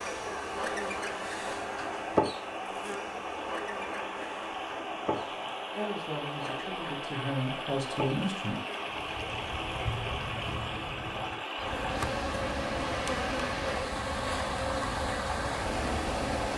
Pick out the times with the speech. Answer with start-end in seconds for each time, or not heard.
5.8-8.6.